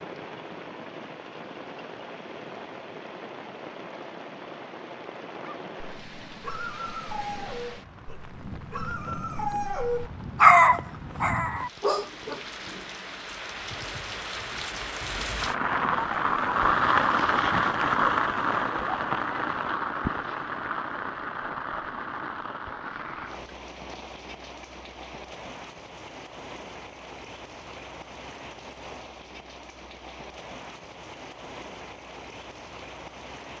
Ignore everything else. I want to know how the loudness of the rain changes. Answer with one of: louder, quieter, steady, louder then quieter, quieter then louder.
louder then quieter.